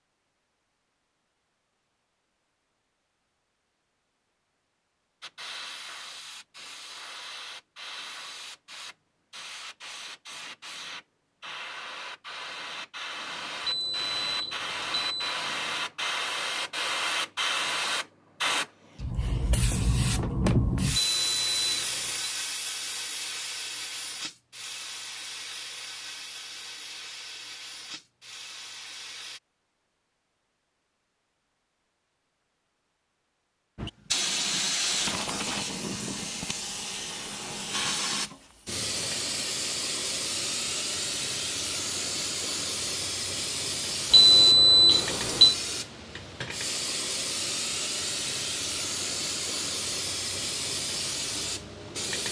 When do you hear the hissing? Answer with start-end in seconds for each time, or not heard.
5.2-29.4, 33.8-52.2.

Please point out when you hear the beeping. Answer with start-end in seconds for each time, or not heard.
13.7-15.3, 20.9-22.3, 44.1-45.5.